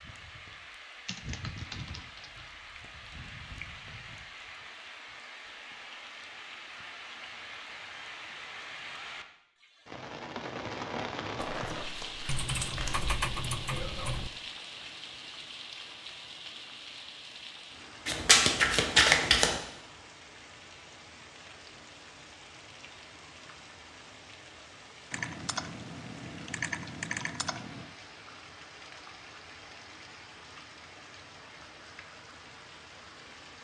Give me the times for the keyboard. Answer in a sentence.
The keyboard can be heard from 1.1 to 2.5 s, from 12.2 to 14.3 s and from 25.1 to 27.9 s.